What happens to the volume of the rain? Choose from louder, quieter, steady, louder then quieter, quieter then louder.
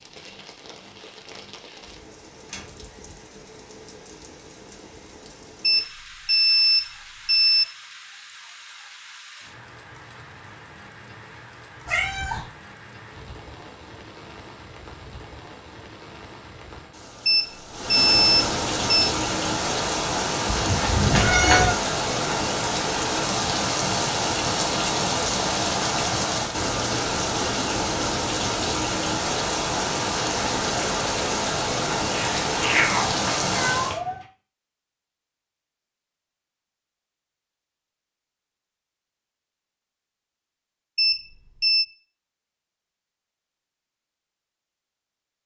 louder.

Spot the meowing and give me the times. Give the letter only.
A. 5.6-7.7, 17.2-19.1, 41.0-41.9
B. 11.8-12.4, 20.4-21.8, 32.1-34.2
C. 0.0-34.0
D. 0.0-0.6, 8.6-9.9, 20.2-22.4
B.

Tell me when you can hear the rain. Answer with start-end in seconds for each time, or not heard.
0.0-34.0.